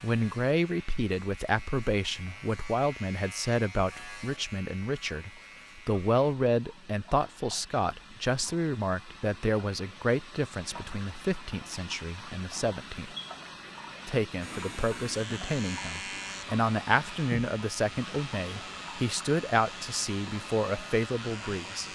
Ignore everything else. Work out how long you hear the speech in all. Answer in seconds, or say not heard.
21 s.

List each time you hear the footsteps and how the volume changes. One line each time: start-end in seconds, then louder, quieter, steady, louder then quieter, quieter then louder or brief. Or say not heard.
not heard.